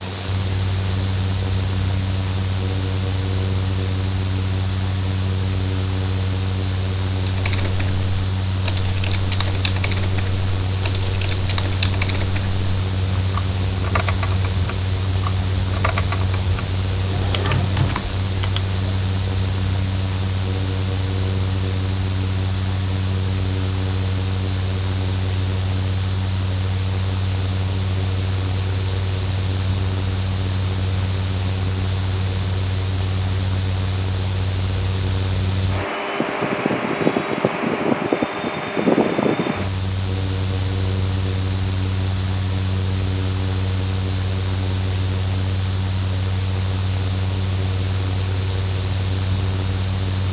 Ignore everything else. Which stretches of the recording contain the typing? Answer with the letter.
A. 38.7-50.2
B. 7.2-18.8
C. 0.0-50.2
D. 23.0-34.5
B.